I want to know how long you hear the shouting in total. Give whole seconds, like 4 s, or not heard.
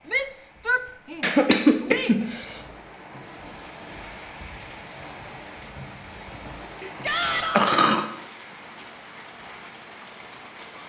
3 s.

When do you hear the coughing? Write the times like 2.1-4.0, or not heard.
1.2-2.6, 6.8-8.1.